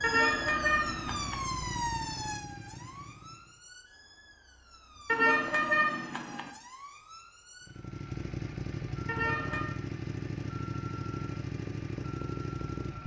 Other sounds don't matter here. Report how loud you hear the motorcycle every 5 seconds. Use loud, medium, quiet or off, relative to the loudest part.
medium, loud, loud.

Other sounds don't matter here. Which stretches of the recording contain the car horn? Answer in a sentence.
You can hear the car horn from 0.0 to 1.4 s, from 5.0 to 6.5 s and from 9.1 to 9.7 s.